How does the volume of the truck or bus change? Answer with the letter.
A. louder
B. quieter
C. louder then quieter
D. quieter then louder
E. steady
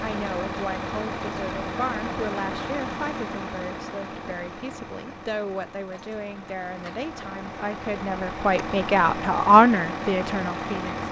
D.